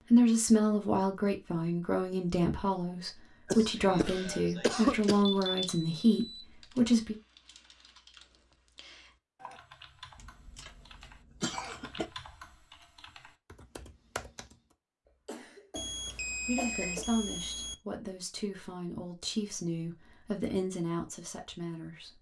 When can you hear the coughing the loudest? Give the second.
5 s.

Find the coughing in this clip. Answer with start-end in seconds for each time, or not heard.
3.5-5.2, 10.2-12.1, 15.2-17.1.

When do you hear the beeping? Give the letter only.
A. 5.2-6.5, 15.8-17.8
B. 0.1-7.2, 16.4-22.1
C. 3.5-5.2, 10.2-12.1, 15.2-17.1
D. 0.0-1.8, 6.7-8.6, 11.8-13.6
A.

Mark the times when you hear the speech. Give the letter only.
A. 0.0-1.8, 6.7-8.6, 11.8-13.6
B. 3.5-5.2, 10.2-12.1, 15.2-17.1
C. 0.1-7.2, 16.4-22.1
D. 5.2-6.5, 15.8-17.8
C.